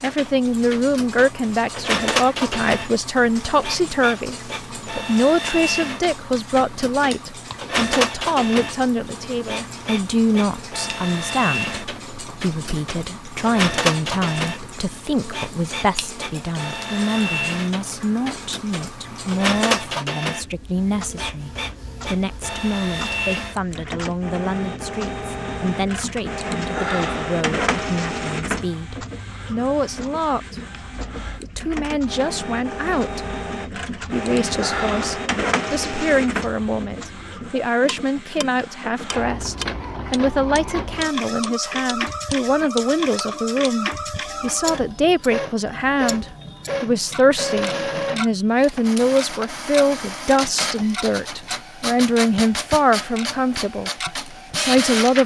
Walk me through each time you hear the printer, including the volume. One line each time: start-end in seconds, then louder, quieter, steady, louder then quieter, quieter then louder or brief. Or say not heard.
0.0-55.2 steady.